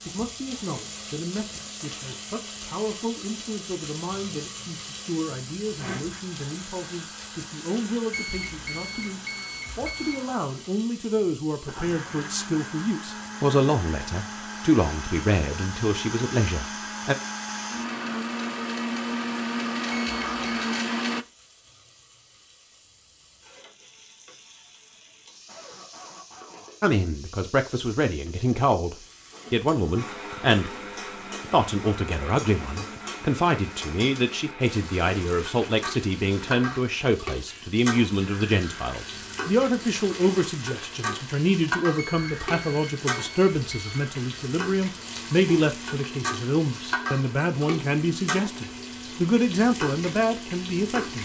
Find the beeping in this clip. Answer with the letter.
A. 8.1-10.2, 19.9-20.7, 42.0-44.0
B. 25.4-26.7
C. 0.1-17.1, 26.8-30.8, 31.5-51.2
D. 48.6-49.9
A.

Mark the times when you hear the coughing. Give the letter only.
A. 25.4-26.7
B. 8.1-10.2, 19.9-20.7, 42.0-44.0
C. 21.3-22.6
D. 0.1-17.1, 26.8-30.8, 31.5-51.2
A.